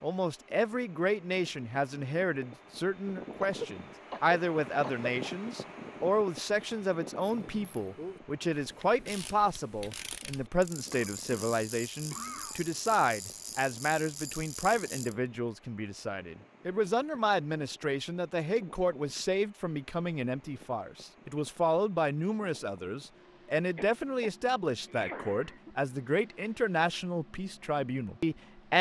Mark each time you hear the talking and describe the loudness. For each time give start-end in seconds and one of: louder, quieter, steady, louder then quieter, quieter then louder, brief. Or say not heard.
0.0-28.7 steady.